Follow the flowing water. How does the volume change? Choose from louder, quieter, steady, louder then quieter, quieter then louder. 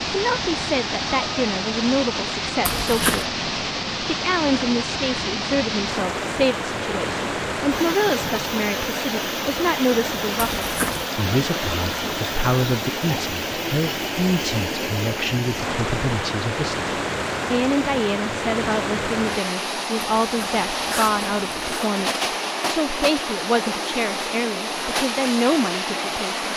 steady.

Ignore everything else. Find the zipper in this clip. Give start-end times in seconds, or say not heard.
2.6-3.2, 10.3-11.1, 20.2-21.9.